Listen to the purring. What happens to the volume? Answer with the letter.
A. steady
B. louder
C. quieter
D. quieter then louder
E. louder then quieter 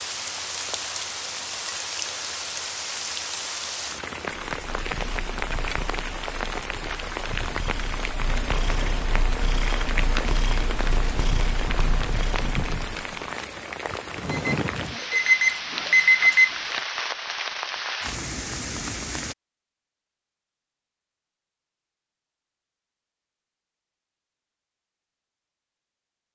B.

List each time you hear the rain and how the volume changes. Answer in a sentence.
The rain can be heard from 0.0 to 19.4 s, at a steady volume.